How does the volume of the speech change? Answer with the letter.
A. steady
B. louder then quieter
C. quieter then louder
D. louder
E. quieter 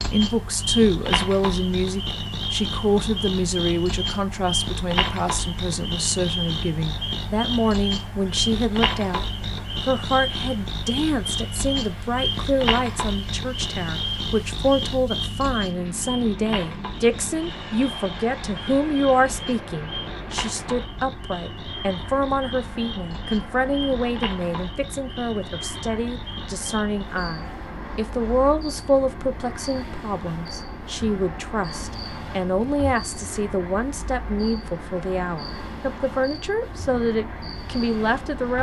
A.